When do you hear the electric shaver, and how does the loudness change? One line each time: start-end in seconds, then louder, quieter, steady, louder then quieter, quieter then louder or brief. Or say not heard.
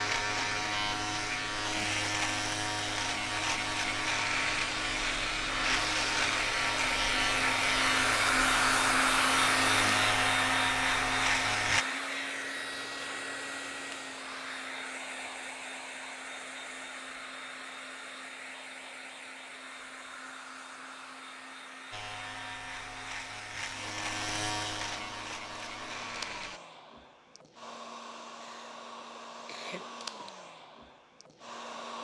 0.0-11.8 steady
21.9-26.6 louder then quieter.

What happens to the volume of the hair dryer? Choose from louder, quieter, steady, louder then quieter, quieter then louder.
quieter.